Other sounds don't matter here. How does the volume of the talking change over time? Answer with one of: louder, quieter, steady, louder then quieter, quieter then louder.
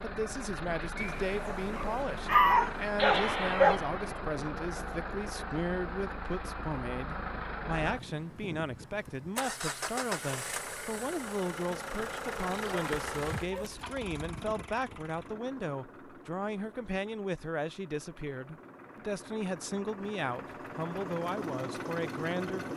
steady.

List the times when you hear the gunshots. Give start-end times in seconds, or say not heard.
3.0-4.2.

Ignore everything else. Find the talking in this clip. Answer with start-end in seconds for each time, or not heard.
0.0-22.7.